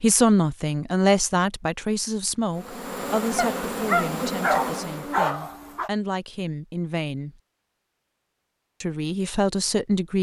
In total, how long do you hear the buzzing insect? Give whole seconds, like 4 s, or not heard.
3 s.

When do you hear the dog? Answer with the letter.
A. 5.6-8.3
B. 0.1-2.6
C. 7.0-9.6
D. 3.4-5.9
D.